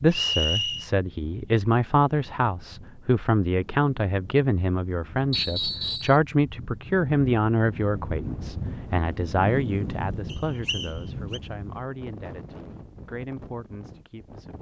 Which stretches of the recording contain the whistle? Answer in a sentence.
The whistle can be heard from 0.1 to 0.8 s, from 5.3 to 6.2 s and from 10.3 to 11.4 s.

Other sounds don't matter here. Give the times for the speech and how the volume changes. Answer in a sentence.
You can hear the speech from 0.0 to 14.5 s, getting quieter.